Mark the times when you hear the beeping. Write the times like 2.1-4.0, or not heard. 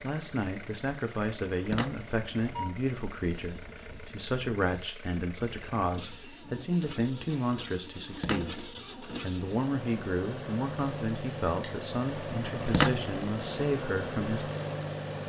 1.6-2.7, 8.0-8.6, 12.4-13.1.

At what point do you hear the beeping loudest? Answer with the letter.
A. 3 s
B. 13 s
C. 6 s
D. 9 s
B.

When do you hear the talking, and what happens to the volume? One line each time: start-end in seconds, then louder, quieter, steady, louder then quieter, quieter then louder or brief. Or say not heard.
0.0-14.5 steady.